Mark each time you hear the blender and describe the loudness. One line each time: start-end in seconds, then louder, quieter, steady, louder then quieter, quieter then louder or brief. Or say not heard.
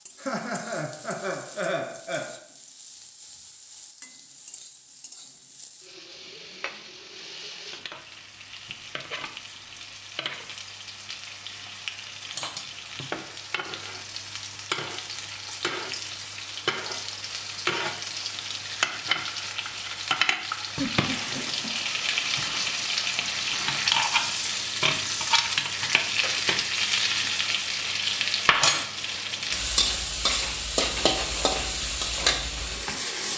not heard.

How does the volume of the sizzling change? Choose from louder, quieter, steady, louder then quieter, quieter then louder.
louder.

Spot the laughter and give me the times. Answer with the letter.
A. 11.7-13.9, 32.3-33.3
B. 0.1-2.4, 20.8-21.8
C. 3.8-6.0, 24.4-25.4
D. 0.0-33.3
B.